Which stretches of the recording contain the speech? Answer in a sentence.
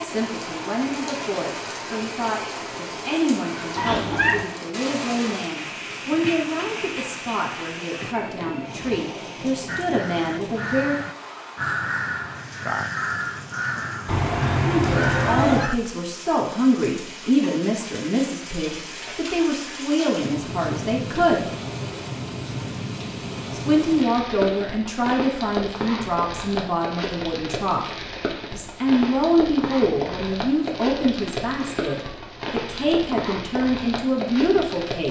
The speech can be heard from 0.0 to 11.0 s, from 14.6 to 21.5 s, from 23.5 to 27.9 s and from 28.5 to 35.0 s.